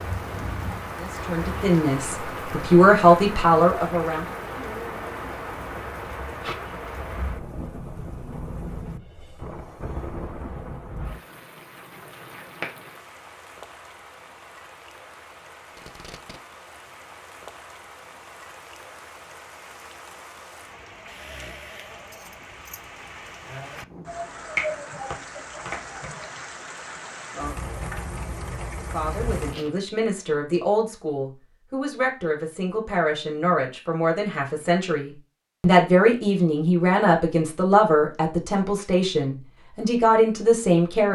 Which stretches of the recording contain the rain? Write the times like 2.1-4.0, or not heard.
0.0-29.6.